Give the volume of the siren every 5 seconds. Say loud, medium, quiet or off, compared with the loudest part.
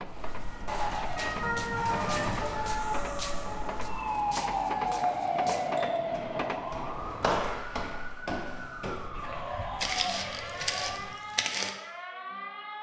loud, loud, medium.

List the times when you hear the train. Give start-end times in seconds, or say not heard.
0.0-7.5.